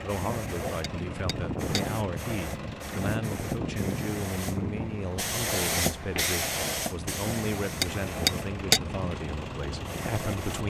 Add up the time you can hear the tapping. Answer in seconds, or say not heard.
2 s.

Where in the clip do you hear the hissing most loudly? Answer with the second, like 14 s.
6 s.